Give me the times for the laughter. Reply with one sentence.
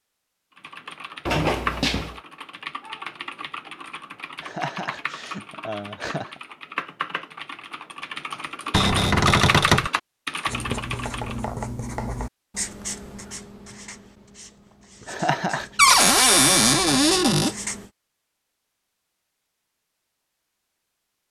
The laughter can be heard from 4.4 to 6.4 s and from 15.1 to 15.7 s.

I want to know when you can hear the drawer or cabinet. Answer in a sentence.
You can hear the drawer or cabinet from 1.2 to 2.2 s, from 8.7 to 9.9 s and from 15.8 to 17.6 s.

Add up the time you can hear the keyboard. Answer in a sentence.
The keyboard can be heard for 11 seconds in total.